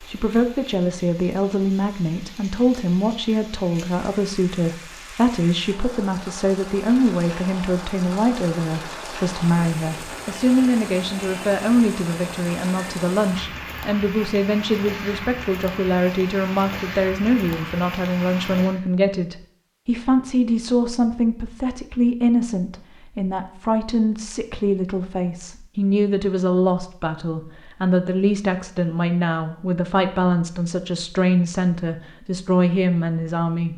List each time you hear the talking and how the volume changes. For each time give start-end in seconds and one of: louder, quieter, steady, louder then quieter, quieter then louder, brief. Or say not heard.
0.0-33.7 steady.